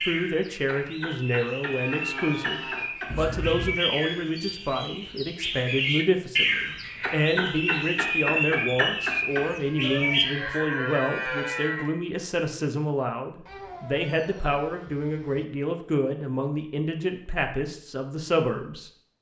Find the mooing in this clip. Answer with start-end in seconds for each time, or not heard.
1.8-3.0, 9.8-11.8.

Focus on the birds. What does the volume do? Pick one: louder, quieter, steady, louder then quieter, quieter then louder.
louder.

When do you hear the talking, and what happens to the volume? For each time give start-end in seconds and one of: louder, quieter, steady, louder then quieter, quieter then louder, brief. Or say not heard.
0.1-18.9 steady.